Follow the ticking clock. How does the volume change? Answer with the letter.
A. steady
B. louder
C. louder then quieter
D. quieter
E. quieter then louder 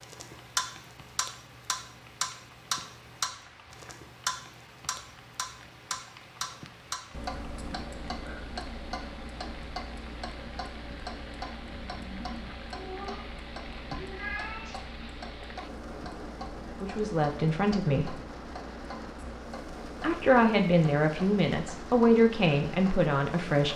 D.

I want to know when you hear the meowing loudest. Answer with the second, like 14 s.
14 s.